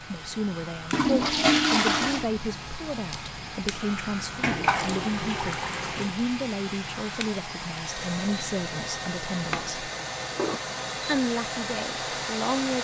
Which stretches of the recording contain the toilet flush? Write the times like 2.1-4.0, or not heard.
0.9-2.2, 4.4-6.1, 9.3-10.6.